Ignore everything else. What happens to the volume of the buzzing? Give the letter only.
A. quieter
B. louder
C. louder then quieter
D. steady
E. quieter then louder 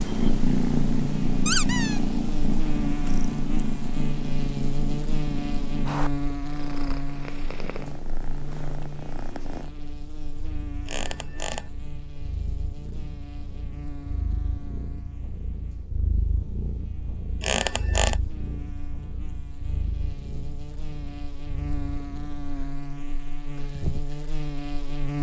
E.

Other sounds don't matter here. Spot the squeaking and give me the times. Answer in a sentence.
The squeaking can be heard from 1.4 to 2.0 s, from 10.9 to 11.6 s and from 17.4 to 18.1 s.